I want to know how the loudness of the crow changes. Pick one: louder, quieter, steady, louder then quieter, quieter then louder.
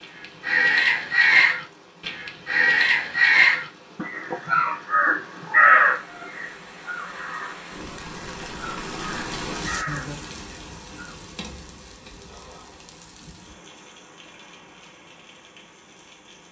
quieter.